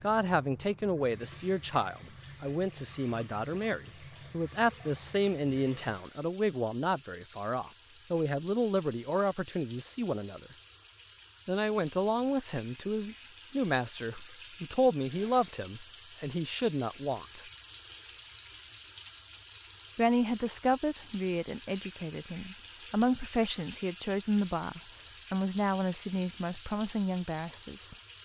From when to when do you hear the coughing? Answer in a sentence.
The coughing can't be heard in this clip.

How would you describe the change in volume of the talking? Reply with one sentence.
The loudness of the talking stays about the same.